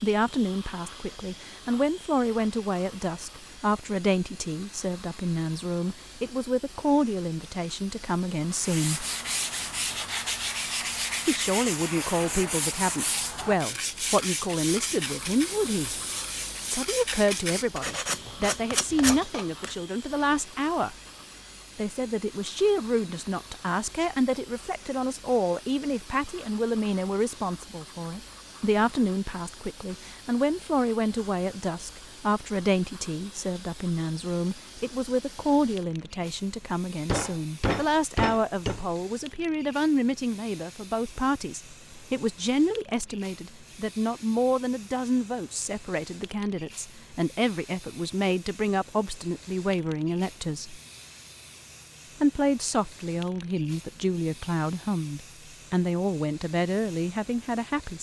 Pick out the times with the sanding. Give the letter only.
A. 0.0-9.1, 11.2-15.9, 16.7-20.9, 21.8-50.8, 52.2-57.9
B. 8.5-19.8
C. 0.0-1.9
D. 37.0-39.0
B.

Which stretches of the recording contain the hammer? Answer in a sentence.
You can hear the hammer from 37.0 to 39.0 s.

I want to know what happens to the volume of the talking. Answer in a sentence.
The volume of the talking stays about the same.